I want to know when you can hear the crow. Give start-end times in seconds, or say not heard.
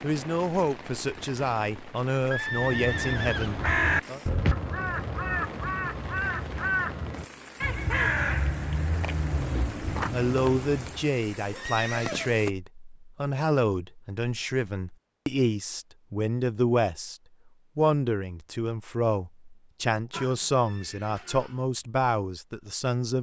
2.4-11.2.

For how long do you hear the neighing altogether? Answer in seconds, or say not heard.
4 s.